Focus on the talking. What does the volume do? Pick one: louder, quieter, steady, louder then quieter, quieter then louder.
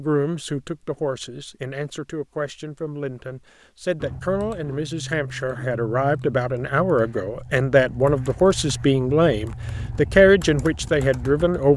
louder.